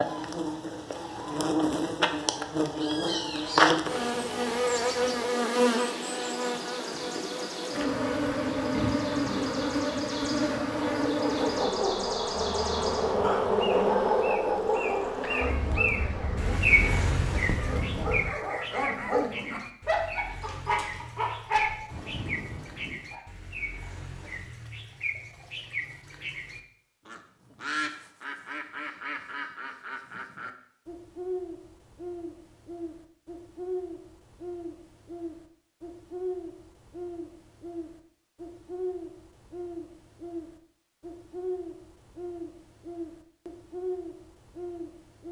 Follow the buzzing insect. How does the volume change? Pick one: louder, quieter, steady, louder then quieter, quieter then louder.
quieter.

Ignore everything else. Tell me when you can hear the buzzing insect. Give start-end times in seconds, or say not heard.
0.0-18.4.